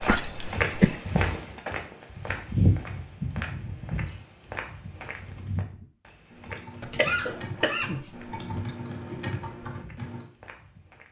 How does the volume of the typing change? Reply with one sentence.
The loudness of the typing goes up.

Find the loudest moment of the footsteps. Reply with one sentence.
The loudest moment of the footsteps is at 3 seconds.